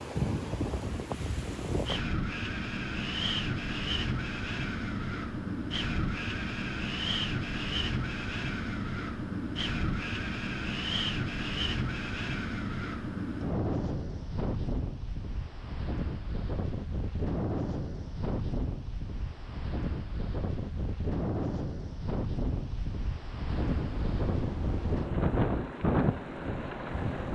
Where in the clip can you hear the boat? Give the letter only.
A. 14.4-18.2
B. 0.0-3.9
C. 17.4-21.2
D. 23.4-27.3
D.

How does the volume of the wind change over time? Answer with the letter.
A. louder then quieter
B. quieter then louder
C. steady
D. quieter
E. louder
C.